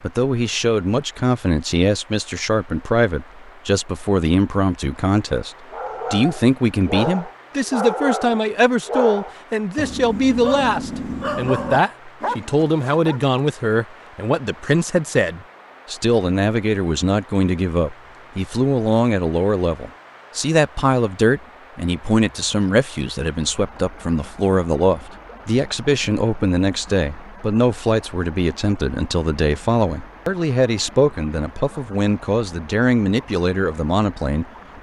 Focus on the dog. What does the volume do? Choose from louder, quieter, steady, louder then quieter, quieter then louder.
steady.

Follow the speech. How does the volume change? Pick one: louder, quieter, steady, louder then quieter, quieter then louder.
steady.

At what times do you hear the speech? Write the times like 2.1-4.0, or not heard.
0.0-34.5.